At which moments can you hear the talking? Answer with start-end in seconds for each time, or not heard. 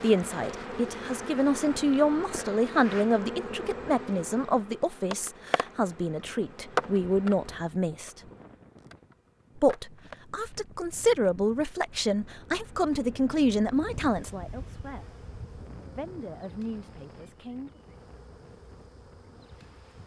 0.0-8.1, 9.6-15.1, 15.9-17.7.